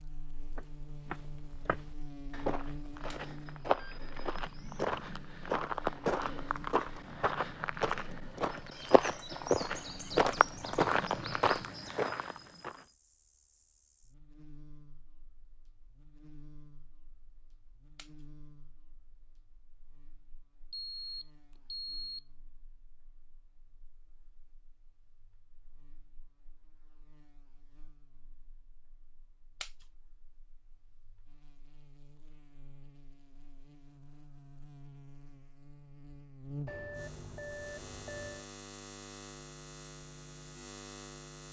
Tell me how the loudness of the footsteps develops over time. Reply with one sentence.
The loudness of the footsteps goes up.